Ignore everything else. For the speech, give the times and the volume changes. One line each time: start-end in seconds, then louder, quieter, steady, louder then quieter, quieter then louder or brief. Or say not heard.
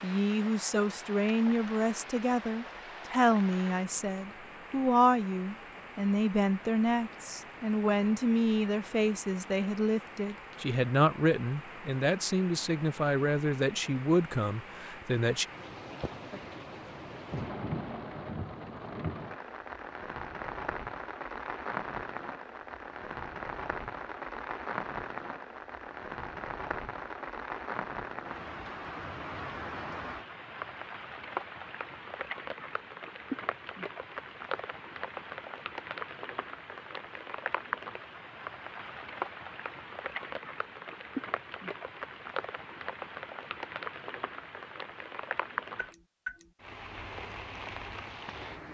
0.0-15.4 steady.